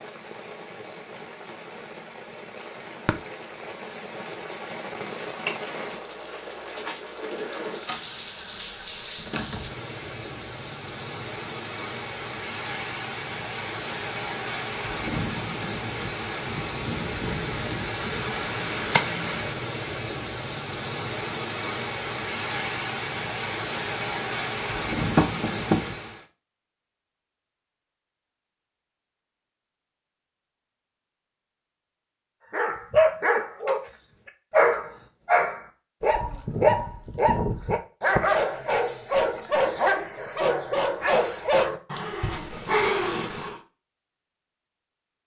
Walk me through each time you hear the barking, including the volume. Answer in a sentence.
You can hear the barking briefly from 32.5 to 33.9 s; and from 34.5 to 43.6 s, at a steady volume.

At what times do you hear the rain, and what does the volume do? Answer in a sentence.
The rain can be heard from 0.0 to 26.2 s, getting louder.